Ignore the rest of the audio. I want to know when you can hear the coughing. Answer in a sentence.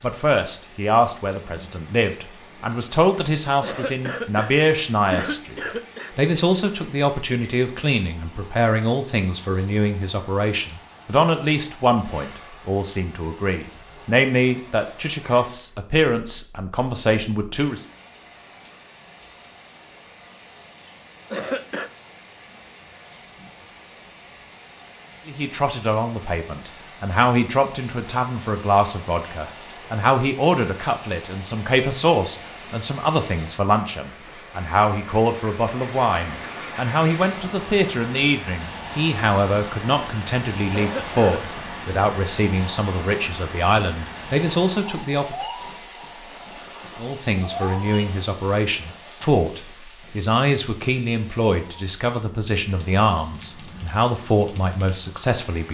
The coughing can be heard from 3.6 to 6.2 s, from 21.3 to 21.9 s and from 40.7 to 41.4 s.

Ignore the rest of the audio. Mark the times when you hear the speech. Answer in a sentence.
You can hear the speech from 0.0 to 17.9 s, from 25.2 to 45.4 s and from 47.0 to 55.7 s.